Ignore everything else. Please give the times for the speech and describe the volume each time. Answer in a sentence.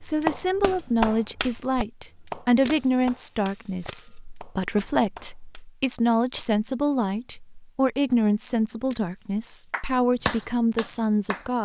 You can hear the speech from 0.0 to 11.6 s, at a steady volume.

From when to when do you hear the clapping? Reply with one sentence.
You can hear the clapping from 0.0 to 5.7 s and from 9.7 to 11.5 s.